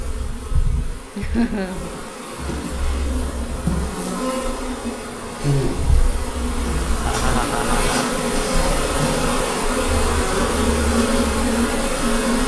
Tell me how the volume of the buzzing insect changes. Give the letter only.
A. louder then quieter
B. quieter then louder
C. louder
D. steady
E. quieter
C.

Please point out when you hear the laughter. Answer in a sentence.
The laughter can be heard from 1.1 to 2.0 s and from 7.0 to 8.1 s.